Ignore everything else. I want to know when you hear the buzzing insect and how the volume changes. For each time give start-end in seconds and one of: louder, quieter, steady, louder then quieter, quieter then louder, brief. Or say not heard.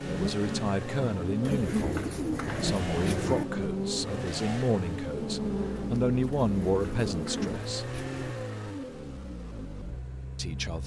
0.0-7.6 steady.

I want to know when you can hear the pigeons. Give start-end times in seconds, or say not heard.
1.4-3.5, 6.3-8.3.